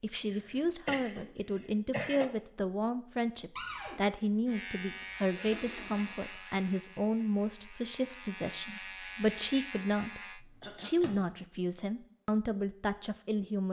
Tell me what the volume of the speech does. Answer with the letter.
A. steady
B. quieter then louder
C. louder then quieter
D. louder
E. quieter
A.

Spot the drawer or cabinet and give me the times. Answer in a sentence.
You can hear the drawer or cabinet from 3.5 to 4.0 s and from 10.6 to 11.2 s.